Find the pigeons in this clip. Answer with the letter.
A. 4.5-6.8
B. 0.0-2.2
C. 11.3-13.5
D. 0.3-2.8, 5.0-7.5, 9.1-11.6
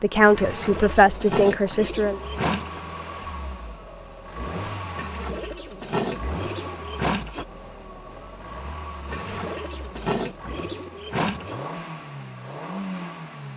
D.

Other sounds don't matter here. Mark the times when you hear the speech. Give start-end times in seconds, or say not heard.
0.0-2.2.